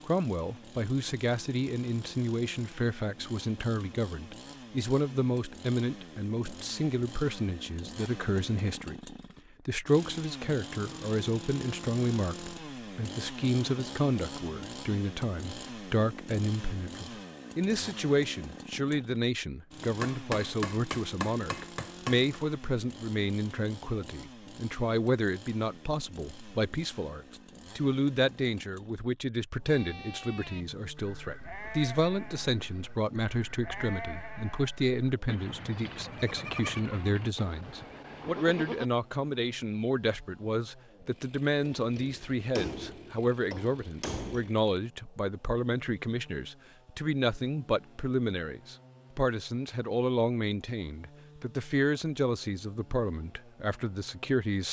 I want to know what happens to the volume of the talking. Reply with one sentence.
The volume of the talking stays about the same.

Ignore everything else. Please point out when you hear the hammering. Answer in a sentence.
You can hear the hammering from 20.0 to 22.2 s and from 41.6 to 44.5 s.